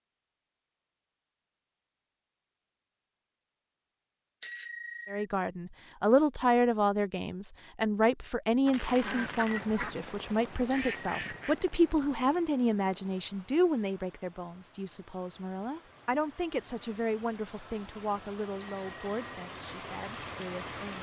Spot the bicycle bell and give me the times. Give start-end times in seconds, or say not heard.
4.4-5.2, 10.7-11.4, 18.6-19.4.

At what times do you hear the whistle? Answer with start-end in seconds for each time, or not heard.
not heard.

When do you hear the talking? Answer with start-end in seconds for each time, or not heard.
5.0-20.9.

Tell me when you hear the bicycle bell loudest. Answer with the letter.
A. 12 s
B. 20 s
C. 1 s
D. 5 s
D.